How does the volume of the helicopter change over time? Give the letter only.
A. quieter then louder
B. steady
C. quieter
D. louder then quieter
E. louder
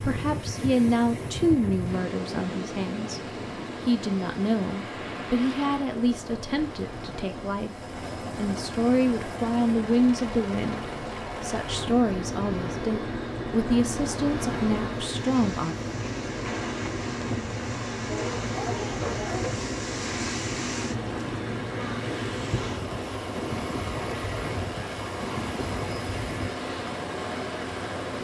E.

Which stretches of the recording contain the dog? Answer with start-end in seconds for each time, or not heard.
18.1-19.7.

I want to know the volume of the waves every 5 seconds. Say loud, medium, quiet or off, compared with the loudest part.
loud, medium, loud, loud, loud, loud.